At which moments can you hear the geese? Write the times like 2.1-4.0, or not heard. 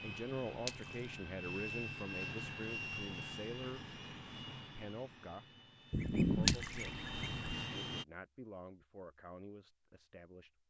5.9-7.7.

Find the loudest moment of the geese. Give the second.
6 s.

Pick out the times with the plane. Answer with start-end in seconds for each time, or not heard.
0.0-8.1.